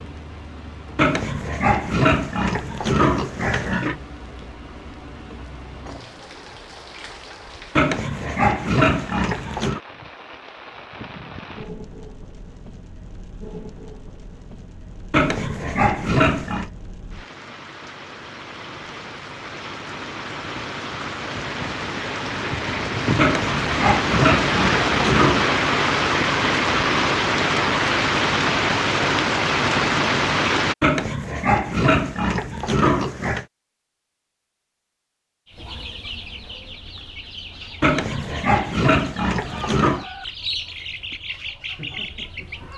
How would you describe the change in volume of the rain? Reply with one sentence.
The loudness of the rain goes up.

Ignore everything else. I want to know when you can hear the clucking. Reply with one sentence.
You can hear the clucking from 35.5 to 42.7 s.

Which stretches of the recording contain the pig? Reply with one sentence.
You can hear the pig from 0.9 to 4.0 s, from 7.8 to 9.8 s, from 15.1 to 16.7 s, from 23.1 to 25.5 s, from 30.8 to 33.5 s and from 37.8 to 40.0 s.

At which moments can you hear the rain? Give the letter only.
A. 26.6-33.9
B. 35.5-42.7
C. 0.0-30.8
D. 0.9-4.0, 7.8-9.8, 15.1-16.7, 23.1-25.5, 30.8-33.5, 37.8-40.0
C.